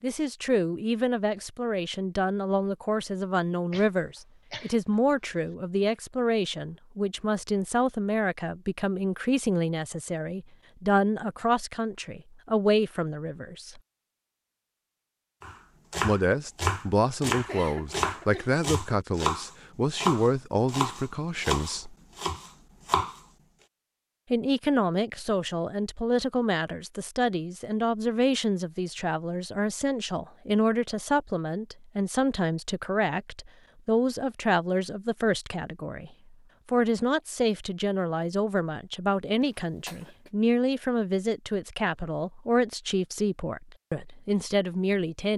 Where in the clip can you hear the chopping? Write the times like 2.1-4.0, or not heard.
15.4-23.2.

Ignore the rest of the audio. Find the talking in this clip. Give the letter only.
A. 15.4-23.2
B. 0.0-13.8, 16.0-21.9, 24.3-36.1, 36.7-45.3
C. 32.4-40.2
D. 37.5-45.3
B.